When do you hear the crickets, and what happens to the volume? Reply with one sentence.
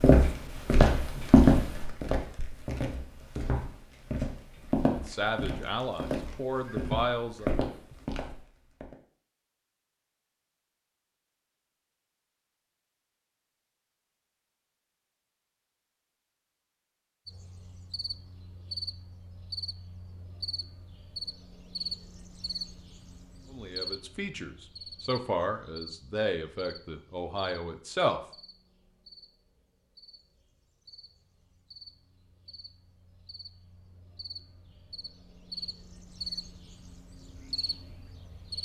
The crickets can be heard from 17.2 to 38.5 s, getting quieter then louder.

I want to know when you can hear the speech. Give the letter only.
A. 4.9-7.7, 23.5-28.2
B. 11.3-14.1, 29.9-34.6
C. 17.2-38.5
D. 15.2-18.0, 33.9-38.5
A.